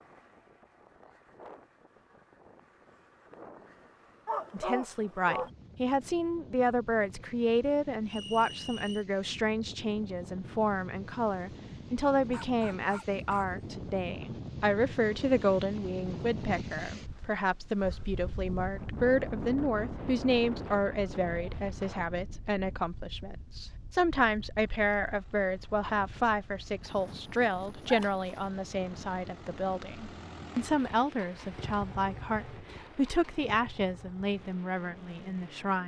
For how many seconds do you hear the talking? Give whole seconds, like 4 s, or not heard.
31 s.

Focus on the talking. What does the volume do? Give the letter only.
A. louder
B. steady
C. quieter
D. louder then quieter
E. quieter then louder
B.